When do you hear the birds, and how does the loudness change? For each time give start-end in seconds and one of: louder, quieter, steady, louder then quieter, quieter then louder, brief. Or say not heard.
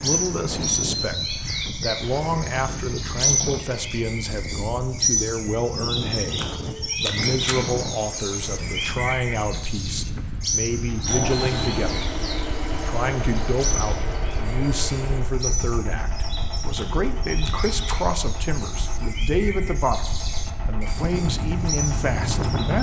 0.0-22.7 quieter.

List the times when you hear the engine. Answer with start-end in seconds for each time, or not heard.
10.8-22.7.